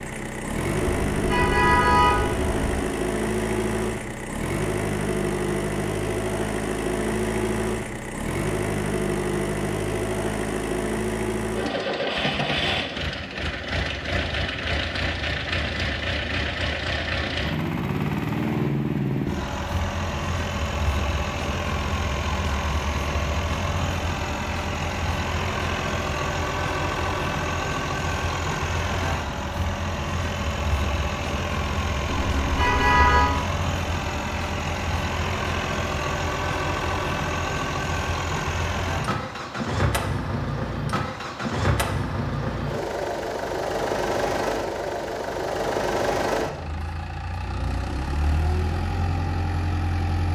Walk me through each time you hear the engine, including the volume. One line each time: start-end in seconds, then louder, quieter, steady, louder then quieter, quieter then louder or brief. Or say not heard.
0.0-50.3 steady.